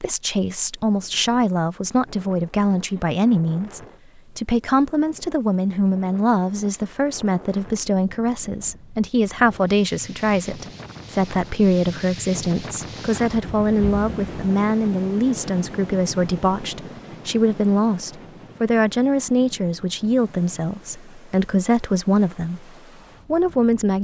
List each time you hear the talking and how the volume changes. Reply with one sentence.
You can hear the talking from 0.0 to 22.7 s, at a steady volume; and briefly from 23.3 to 23.9 s.